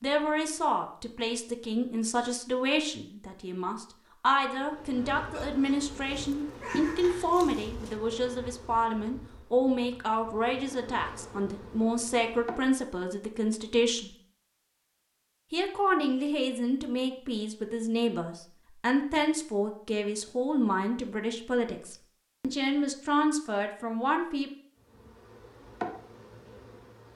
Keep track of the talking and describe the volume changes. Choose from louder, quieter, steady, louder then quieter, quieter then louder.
steady.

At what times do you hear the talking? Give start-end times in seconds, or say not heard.
0.0-14.1, 15.5-24.5.